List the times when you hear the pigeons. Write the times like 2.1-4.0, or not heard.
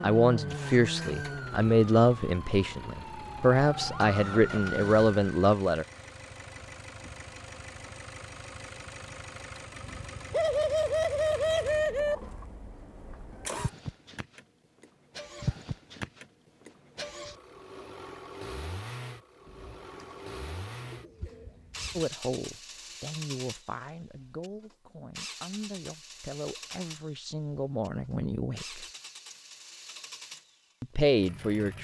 10.3-12.2, 19.4-22.1.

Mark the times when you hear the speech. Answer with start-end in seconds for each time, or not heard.
0.0-5.8, 21.9-28.9, 30.8-31.7.